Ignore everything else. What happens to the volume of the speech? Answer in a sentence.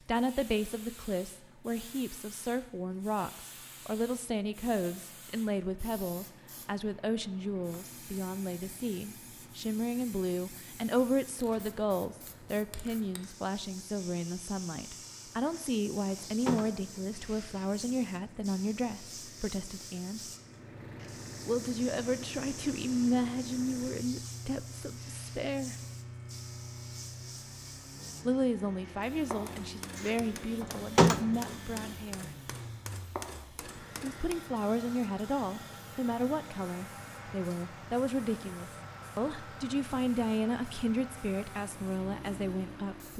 The volume of the speech stays about the same.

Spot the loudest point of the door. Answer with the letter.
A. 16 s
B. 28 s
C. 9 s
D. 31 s
D.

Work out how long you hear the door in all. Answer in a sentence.
The door can be heard for 3 seconds in total.